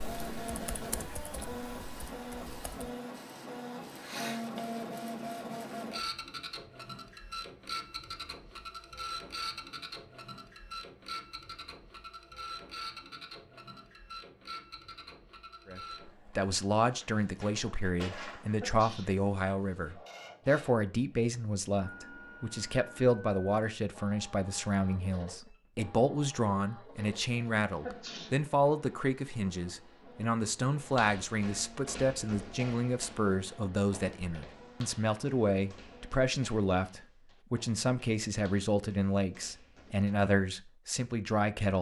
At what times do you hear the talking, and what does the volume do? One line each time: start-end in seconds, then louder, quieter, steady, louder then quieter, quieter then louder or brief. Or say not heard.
15.7-41.7 steady.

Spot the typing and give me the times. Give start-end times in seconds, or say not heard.
0.0-3.0.